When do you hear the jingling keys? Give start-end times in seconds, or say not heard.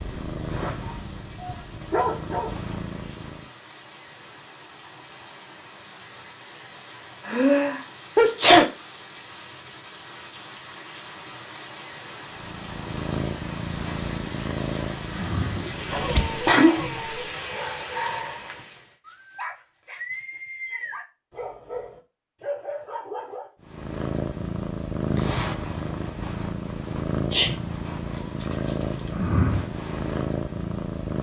15.5-16.3.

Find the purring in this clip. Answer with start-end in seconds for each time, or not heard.
0.0-3.5, 12.3-16.5, 23.6-31.1.